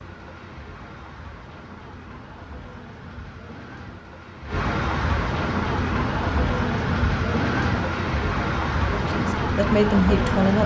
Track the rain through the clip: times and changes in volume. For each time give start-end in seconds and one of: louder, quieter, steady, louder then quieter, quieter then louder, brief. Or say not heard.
0.0-10.6 louder.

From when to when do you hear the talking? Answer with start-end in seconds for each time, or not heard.
8.8-10.6.